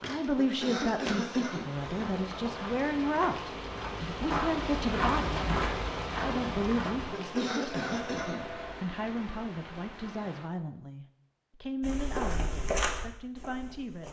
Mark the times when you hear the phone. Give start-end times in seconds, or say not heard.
7.8-8.8.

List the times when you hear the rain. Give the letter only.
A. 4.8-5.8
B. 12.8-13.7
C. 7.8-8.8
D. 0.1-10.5
D.